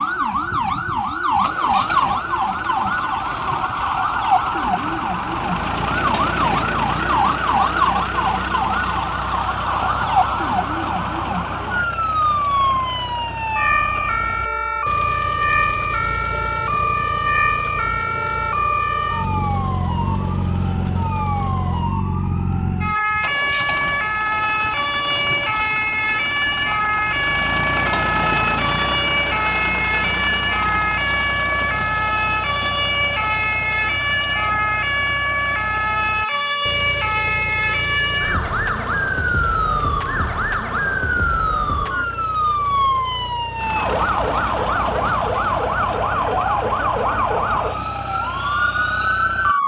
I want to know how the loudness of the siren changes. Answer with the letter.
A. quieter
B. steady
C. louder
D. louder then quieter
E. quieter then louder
B.